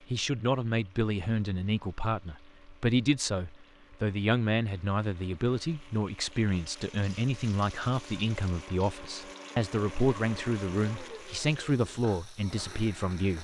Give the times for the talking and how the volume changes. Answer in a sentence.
You can hear the talking from 0.1 to 13.3 s, at a steady volume.